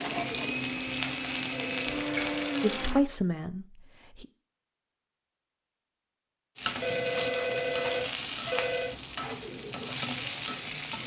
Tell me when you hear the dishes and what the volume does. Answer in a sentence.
The dishes can't be heard in this clip.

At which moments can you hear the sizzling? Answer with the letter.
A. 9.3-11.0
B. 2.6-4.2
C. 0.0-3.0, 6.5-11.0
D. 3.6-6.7
C.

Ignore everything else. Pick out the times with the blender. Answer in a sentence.
The blender can be heard from 0.0 to 3.0 s.